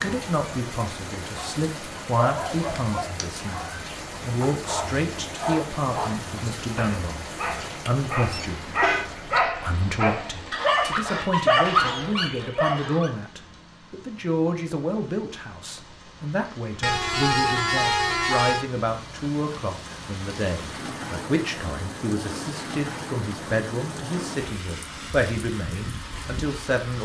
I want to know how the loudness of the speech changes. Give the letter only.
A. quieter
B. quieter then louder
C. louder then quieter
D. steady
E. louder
D.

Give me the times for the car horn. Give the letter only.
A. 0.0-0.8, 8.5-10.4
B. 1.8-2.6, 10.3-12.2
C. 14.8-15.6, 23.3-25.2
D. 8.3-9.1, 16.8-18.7
D.